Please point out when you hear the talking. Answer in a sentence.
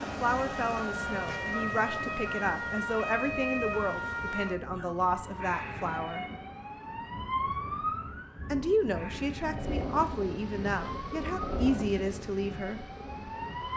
The talking can be heard from 0.0 to 6.2 s and from 8.5 to 12.9 s.